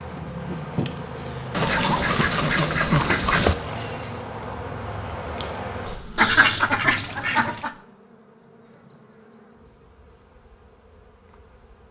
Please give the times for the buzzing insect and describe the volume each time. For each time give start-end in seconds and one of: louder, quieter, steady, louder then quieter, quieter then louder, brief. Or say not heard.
0.0-11.8 quieter.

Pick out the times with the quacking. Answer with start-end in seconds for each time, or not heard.
1.5-3.5, 6.2-7.7.